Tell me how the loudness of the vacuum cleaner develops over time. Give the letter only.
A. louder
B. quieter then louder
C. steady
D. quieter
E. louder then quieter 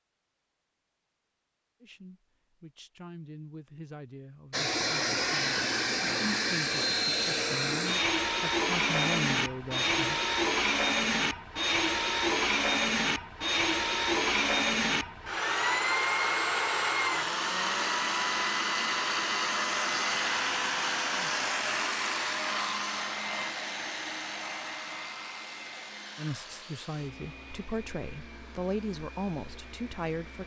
D.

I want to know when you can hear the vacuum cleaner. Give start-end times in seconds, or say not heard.
4.5-30.4.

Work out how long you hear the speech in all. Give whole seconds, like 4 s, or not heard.
13 s.